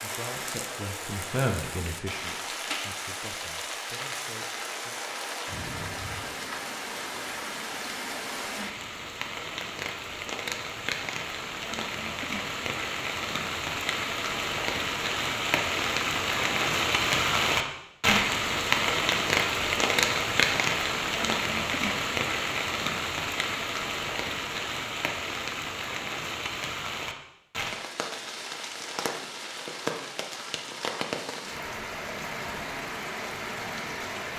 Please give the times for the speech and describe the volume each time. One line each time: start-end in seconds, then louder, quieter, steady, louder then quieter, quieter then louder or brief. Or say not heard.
0.0-5.2 louder then quieter.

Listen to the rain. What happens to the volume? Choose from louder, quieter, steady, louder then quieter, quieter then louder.
louder then quieter.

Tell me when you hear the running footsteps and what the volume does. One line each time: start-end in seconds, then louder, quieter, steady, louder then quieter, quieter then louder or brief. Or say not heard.
not heard.